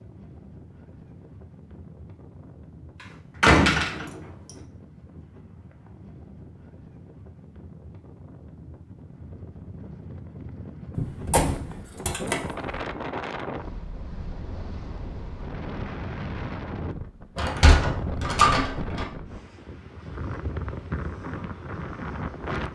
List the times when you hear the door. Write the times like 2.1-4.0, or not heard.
3.4-4.2, 10.9-12.8, 17.4-19.1.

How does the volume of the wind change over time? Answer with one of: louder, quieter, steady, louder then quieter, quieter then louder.
louder.